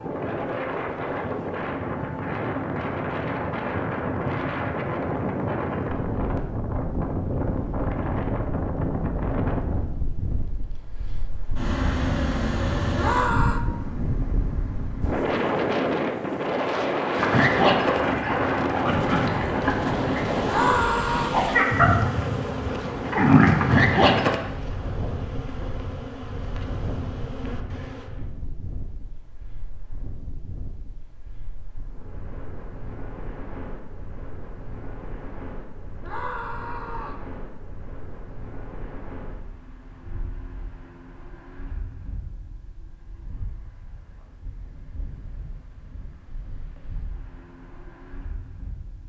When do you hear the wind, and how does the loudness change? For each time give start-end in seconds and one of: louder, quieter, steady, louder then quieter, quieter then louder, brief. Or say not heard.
0.0-49.0 quieter.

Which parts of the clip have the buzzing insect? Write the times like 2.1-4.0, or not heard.
19.6-28.1.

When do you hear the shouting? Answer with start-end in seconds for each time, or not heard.
12.9-13.6, 20.4-21.4, 36.0-37.2.